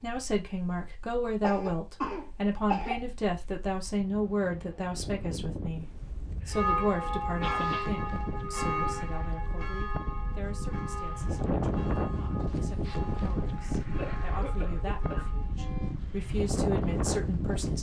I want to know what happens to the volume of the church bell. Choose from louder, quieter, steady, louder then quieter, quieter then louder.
quieter.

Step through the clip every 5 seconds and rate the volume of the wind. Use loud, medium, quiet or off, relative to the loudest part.
quiet, medium, loud, loud.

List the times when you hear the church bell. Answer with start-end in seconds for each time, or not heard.
6.5-15.9.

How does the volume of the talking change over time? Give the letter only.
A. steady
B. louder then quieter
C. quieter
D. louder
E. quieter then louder
E.